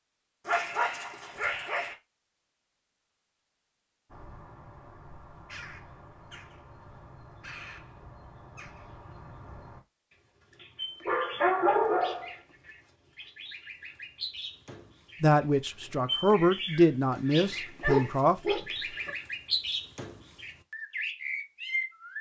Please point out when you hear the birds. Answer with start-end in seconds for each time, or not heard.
4.1-22.1.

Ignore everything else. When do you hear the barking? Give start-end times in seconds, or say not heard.
0.5-1.9, 10.6-12.3, 17.1-19.1.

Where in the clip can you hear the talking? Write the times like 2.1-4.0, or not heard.
15.2-18.6.